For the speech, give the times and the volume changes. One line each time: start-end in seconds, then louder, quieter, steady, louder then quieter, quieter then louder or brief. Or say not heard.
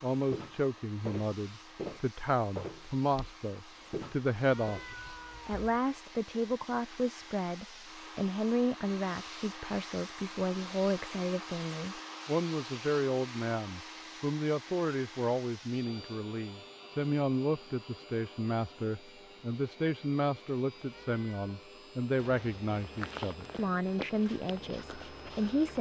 0.0-25.7 steady.